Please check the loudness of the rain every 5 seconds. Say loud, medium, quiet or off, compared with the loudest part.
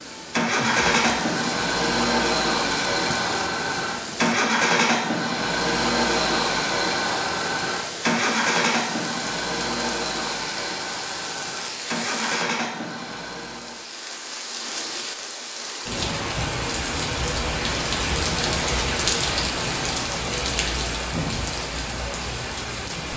medium, medium, medium, loud, loud.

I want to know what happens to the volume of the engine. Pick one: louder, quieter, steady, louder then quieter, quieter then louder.
quieter.